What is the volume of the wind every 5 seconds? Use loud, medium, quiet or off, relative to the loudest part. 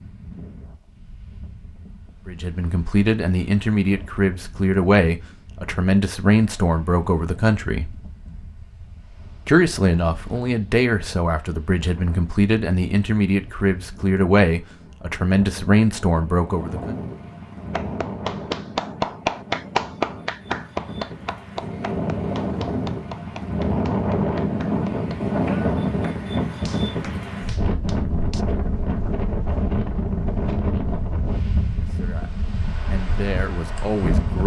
quiet, quiet, quiet, medium, loud, loud, loud.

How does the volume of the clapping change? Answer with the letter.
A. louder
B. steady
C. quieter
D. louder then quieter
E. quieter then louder
C.